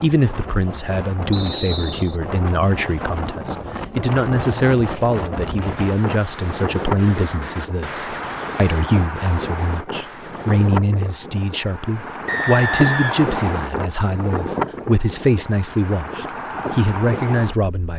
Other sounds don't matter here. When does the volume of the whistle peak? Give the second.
13 s.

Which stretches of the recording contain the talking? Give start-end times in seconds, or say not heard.
0.0-17.9.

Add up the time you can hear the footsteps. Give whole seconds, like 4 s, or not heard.
not heard.